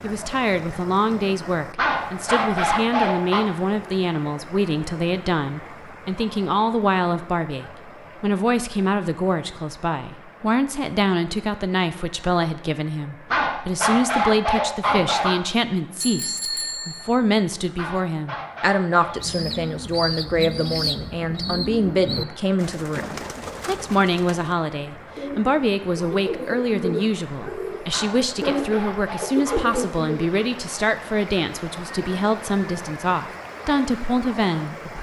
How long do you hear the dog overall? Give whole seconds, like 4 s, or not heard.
7 s.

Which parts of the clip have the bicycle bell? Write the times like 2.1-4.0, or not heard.
16.0-17.1.